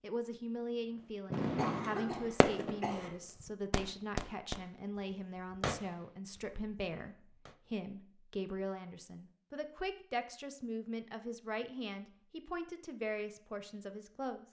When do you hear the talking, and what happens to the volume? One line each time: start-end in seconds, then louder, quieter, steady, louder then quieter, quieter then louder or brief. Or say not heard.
0.0-14.4 steady.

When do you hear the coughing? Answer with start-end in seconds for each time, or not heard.
1.6-3.1.